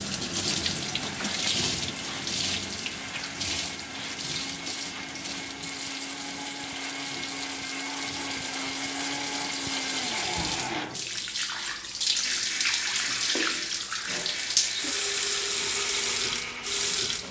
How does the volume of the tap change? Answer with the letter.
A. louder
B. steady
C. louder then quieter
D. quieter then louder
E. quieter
D.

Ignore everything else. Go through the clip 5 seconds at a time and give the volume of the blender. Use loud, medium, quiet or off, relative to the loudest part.
medium, loud, loud, loud.